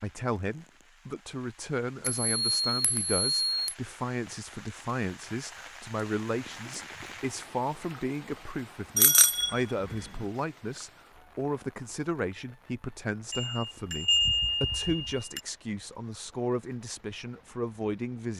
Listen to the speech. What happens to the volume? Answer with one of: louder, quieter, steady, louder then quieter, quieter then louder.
steady.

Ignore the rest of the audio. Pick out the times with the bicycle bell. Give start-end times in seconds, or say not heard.
2.0-3.8, 8.9-9.5, 13.3-15.4.